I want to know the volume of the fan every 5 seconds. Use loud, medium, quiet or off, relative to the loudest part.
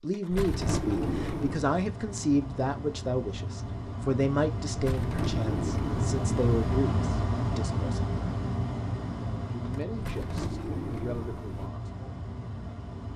medium, loud, medium.